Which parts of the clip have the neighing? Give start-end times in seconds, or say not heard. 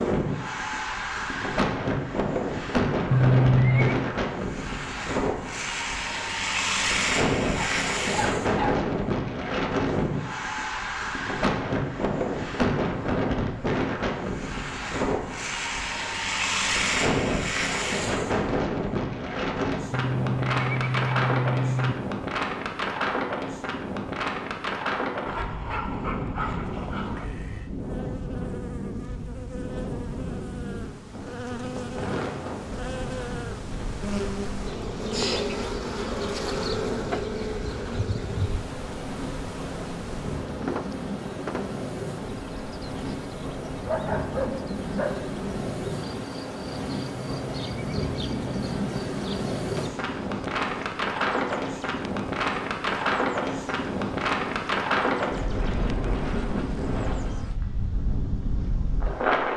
3.1-4.0, 19.9-21.9, 47.0-49.0.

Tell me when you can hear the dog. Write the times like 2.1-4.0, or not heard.
7.5-8.7, 25.2-27.2, 43.6-45.2.